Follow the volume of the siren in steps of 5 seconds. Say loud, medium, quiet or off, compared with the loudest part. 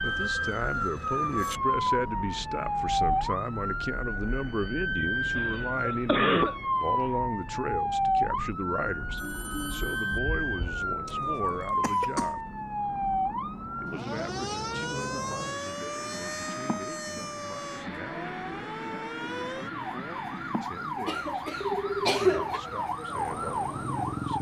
loud, loud, loud, medium, loud.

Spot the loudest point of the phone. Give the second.
22 s.